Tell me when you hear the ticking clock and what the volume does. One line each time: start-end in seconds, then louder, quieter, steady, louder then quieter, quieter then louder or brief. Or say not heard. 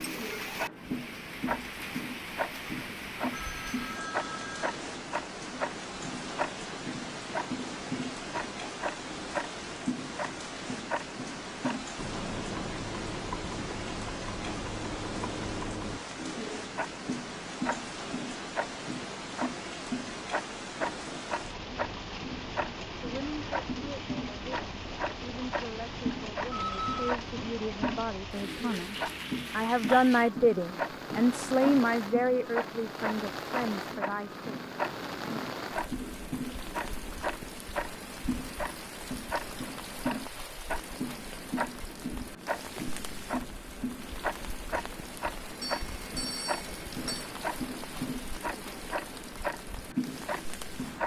0.0-51.0 steady.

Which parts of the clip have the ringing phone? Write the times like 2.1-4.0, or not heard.
3.3-4.8, 26.5-27.1, 45.6-47.2.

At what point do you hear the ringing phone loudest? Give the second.
27 s.